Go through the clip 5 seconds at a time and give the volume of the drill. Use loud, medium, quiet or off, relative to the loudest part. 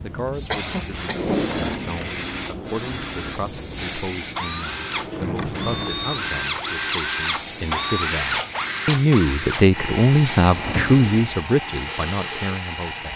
medium, loud, medium.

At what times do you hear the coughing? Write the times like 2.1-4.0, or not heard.
0.5-1.5.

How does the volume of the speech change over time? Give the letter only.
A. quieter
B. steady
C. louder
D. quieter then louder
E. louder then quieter
C.